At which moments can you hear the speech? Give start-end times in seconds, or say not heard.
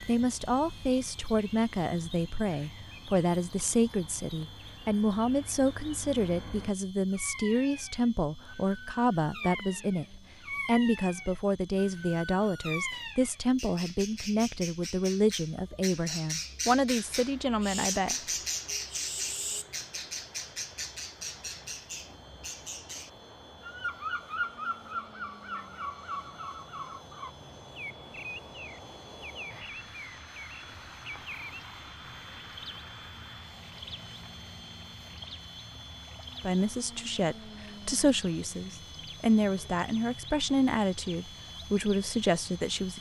0.0-18.1, 36.4-42.9.